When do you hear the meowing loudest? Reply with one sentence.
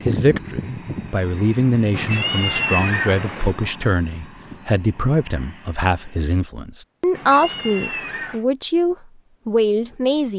The loudest moment of the meowing is at 3 seconds.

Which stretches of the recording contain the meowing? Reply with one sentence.
You can hear the meowing from 1.9 to 3.6 s and from 7.2 to 8.4 s.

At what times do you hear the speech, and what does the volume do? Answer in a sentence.
The speech can be heard from 0.1 to 10.3 s, at a steady volume.